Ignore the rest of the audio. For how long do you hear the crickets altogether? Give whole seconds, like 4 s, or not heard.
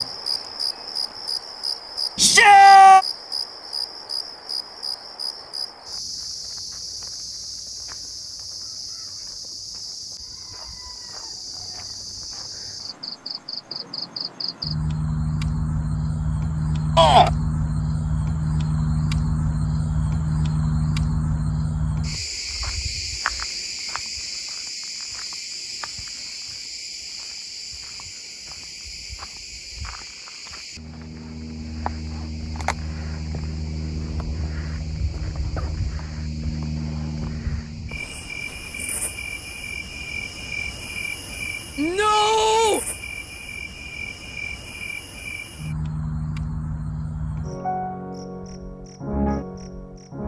50 s.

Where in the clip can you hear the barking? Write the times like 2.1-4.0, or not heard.
not heard.